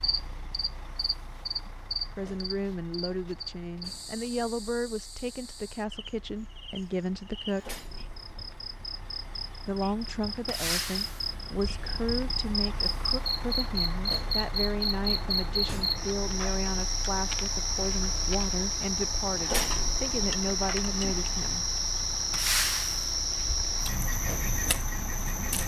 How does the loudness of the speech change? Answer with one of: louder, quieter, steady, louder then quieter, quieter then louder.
steady.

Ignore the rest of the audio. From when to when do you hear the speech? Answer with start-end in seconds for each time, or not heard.
2.1-7.8, 9.7-21.6.